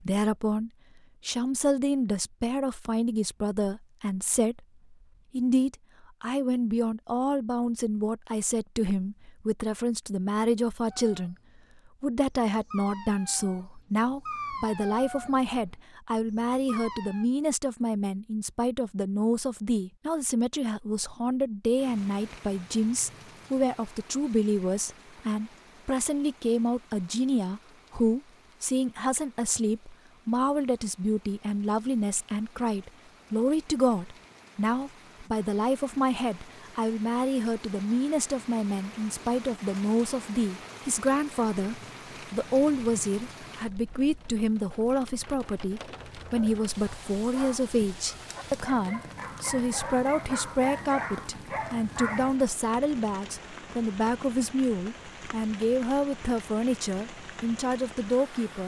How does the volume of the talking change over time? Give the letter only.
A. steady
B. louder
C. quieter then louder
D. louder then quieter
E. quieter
A.